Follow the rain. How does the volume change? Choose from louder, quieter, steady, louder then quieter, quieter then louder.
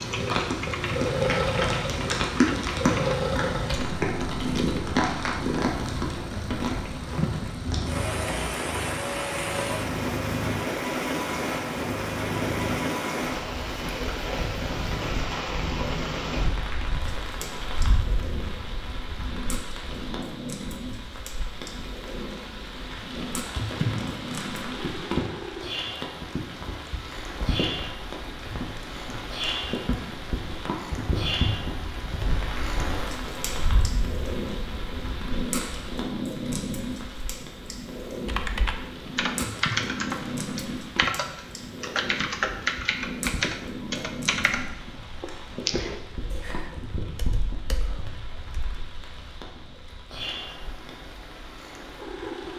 quieter.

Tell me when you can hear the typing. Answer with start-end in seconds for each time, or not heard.
0.0-5.0, 38.2-48.8.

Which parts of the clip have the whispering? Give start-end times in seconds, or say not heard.
not heard.